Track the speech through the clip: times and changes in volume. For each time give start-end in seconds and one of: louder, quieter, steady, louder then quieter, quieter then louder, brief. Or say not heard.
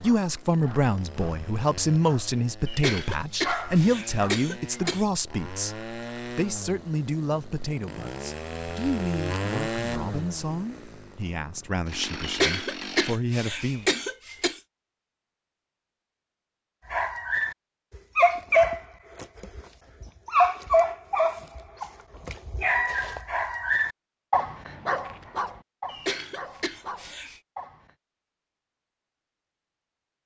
0.0-13.8 quieter.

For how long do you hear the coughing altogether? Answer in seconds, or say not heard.
6 s.